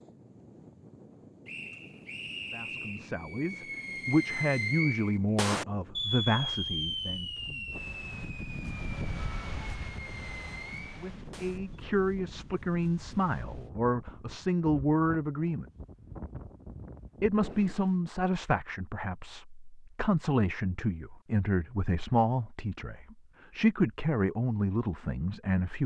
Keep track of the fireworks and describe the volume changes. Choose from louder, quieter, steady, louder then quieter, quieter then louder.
quieter.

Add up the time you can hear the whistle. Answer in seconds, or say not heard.
2 s.